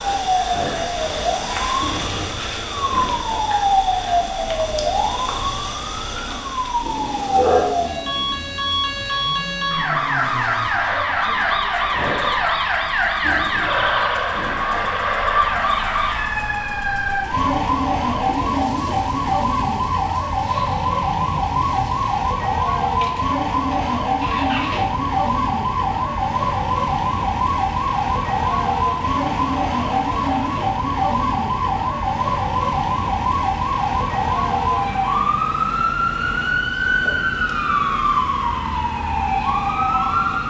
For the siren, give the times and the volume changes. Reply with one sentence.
The siren can be heard from 0.0 to 40.4 s, at a steady volume.